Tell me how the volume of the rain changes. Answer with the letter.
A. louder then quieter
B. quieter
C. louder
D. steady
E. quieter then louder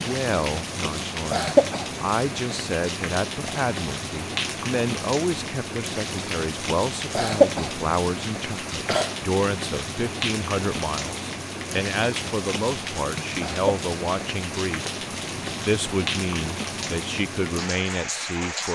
D.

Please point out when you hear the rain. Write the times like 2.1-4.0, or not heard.
0.0-18.7.